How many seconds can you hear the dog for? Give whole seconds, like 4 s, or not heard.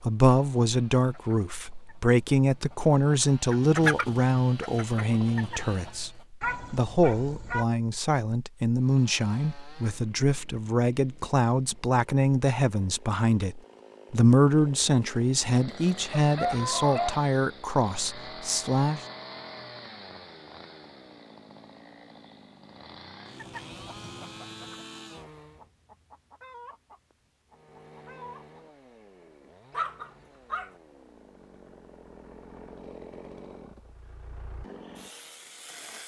4 s.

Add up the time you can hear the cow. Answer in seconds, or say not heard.
not heard.